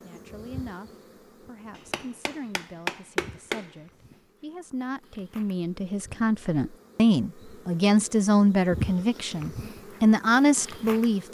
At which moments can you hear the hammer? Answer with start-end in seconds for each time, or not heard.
1.8-4.2.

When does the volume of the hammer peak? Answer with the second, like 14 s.
3 s.